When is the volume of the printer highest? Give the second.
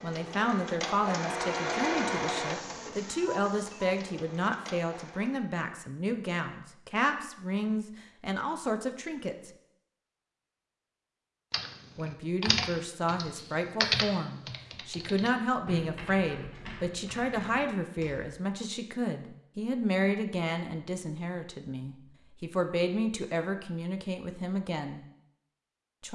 2 s.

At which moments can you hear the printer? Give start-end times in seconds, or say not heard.
0.0-5.5.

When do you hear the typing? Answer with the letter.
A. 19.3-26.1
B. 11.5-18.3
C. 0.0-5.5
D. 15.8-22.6
B.